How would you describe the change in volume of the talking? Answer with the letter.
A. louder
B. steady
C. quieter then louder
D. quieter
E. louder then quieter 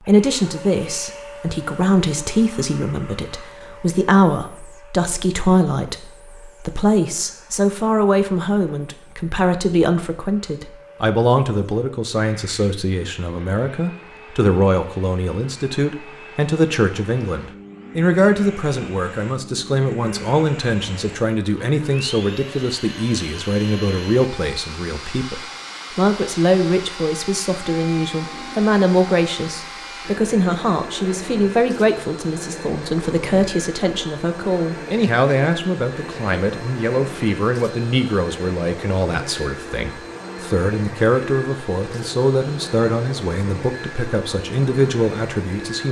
B.